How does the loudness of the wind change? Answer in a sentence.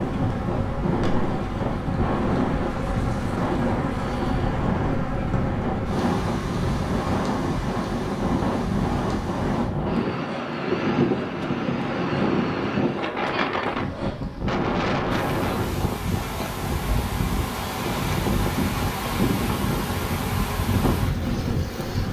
The volume of the wind stays about the same.